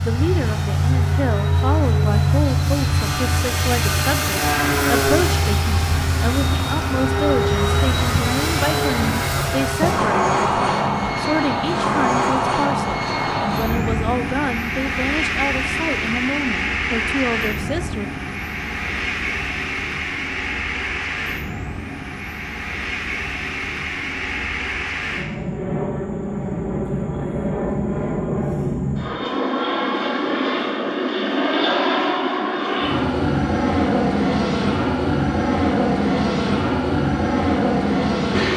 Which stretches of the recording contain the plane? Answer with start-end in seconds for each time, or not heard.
0.0-38.5.